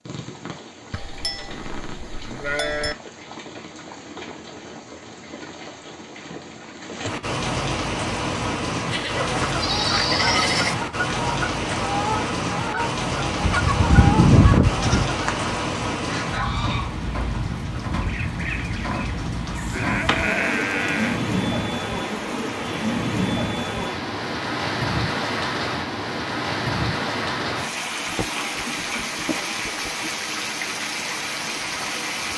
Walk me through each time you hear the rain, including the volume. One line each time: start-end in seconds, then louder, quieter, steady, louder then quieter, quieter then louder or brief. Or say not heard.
0.0-32.3 louder.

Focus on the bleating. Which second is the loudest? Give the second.
14 s.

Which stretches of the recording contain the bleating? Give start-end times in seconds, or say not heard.
0.9-3.0, 8.9-10.8, 13.4-15.1, 19.6-21.2, 28.1-29.9.